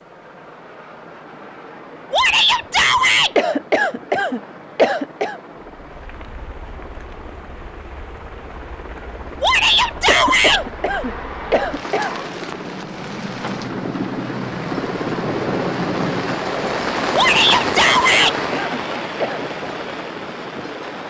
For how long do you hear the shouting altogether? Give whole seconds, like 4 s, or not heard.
4 s.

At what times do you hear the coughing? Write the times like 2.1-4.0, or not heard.
3.4-5.4, 10.1-12.1, 17.8-19.4.